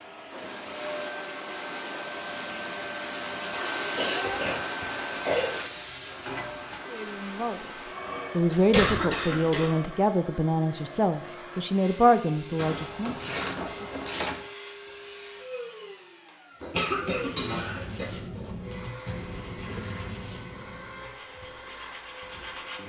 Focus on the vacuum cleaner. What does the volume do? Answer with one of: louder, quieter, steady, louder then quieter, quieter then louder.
quieter.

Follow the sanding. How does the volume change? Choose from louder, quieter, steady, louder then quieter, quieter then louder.
quieter.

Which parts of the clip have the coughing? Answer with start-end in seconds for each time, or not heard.
4.0-5.5, 8.5-9.7, 16.6-18.1.